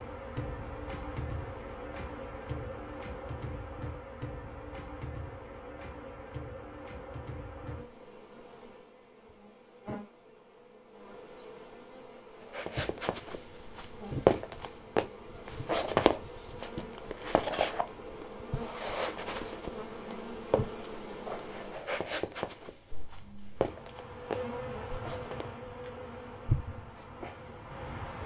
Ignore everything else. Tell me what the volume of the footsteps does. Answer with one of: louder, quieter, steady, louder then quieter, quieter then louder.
quieter.